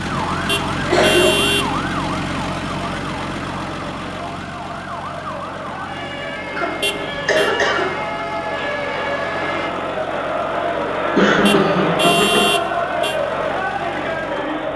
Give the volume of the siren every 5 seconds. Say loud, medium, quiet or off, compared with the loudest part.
loud, loud, off.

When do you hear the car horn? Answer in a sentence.
The car horn can be heard from 0.5 to 1.7 s, from 6.8 to 7.5 s and from 11.4 to 13.2 s.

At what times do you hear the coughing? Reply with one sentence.
You can hear the coughing from 0.9 to 1.6 s, from 6.5 to 8.0 s and from 11.2 to 12.5 s.